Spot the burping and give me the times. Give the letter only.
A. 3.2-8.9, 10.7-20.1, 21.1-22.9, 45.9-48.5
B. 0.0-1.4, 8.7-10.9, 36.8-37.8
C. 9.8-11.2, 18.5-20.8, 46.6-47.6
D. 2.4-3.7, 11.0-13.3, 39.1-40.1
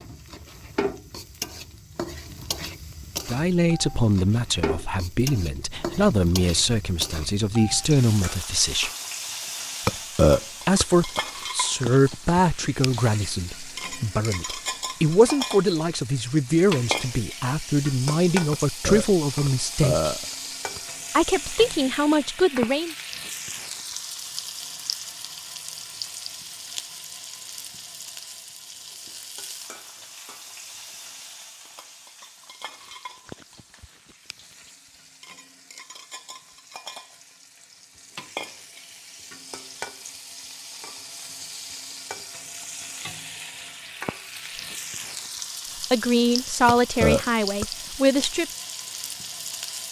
C.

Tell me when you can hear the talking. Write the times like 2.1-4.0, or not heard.
3.2-8.9, 10.7-20.1, 21.1-22.9, 45.9-48.5.